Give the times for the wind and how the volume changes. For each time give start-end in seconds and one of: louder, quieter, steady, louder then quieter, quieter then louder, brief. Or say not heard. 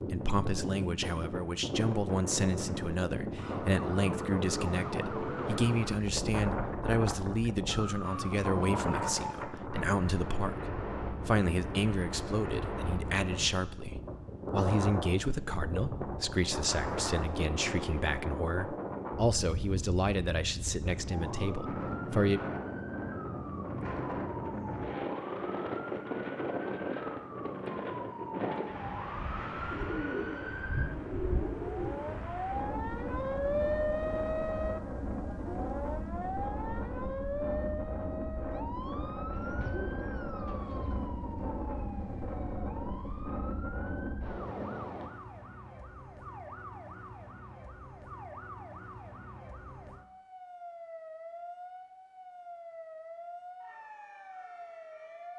0.0-45.1 steady.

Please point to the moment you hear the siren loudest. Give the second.
34 s.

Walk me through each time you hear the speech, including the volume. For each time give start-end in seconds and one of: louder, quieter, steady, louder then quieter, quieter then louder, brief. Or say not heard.
0.1-22.4 steady.